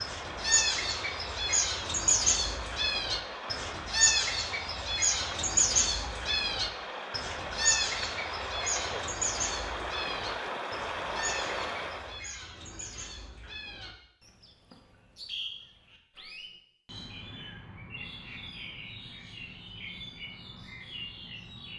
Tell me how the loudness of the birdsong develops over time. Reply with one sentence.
The loudness of the birdsong goes down.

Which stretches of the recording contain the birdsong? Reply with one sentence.
You can hear the birdsong from 0.0 to 21.7 s.